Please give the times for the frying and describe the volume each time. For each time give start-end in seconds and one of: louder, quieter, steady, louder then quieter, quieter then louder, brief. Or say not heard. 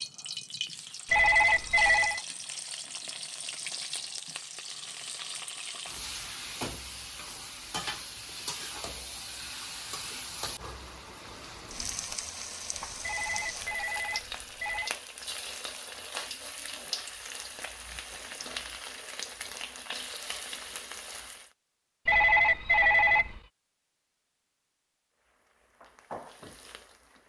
0.0-21.5 steady
25.1-27.2 brief.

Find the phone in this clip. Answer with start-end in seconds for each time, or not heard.
1.1-2.2, 13.0-14.9, 22.1-23.4.